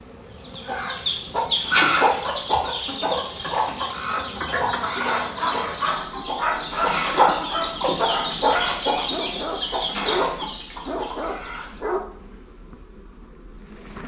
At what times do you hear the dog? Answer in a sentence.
The dog can be heard from 4.3 to 12.0 s.